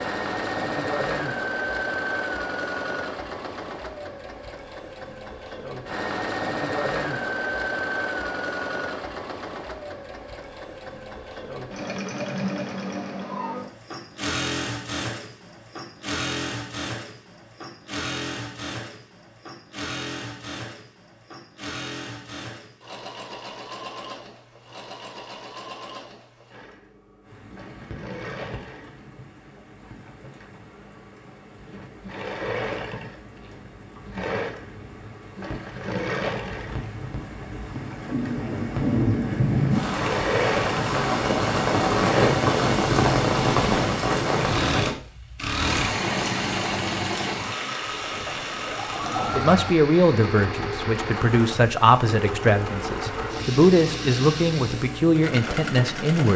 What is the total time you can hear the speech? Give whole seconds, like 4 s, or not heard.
7 s.